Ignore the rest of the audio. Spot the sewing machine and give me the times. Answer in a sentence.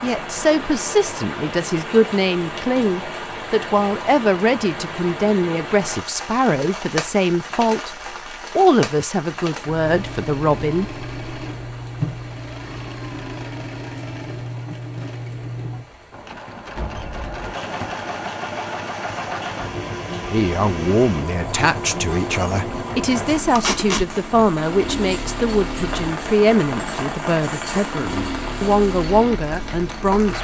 You can hear the sewing machine from 9.6 to 30.3 s.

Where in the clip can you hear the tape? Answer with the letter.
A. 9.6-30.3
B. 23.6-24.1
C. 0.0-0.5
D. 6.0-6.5
B.